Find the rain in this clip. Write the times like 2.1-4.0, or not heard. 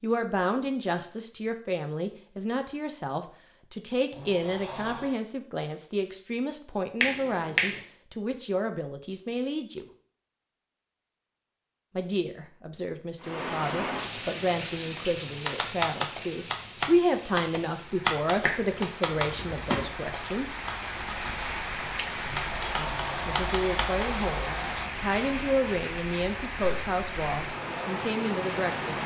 13.2-29.0.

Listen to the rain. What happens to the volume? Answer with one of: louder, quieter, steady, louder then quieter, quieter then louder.
quieter then louder.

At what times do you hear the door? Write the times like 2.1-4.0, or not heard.
4.1-5.2, 22.2-24.9.